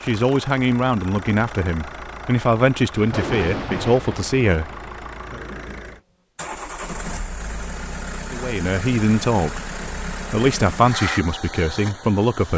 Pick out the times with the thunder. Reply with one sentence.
The thunder can be heard from 3.0 to 6.0 s.